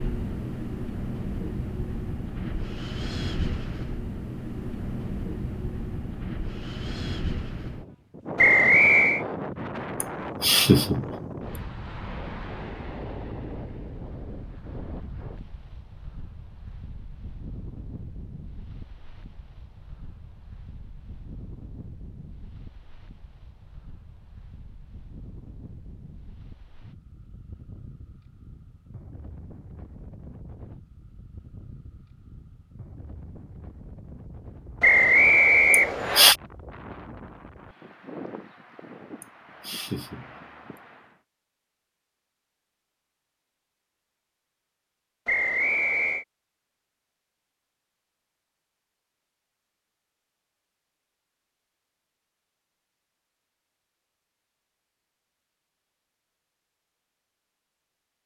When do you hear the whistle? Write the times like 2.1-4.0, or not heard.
8.3-9.2, 34.8-36.4, 45.2-46.2.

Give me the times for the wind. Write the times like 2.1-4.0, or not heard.
0.0-41.2.